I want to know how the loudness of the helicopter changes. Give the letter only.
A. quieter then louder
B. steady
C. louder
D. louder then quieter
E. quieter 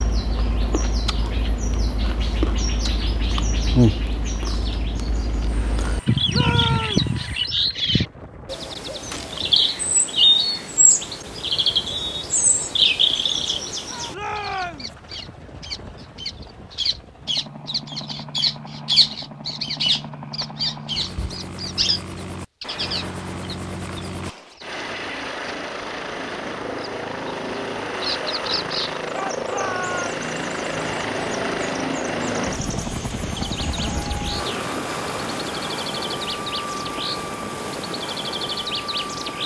C.